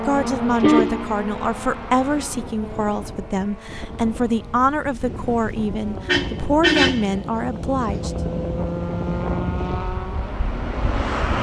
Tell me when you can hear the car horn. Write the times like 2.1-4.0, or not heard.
0.2-1.1, 6.0-7.2.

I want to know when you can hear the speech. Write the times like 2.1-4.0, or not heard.
0.1-8.1.